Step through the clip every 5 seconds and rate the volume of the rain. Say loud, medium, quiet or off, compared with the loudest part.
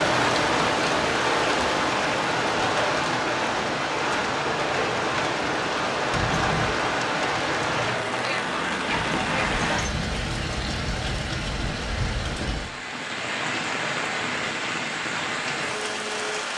loud, loud, medium, medium.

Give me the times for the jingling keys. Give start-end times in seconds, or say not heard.
6.1-6.8, 8.9-10.1.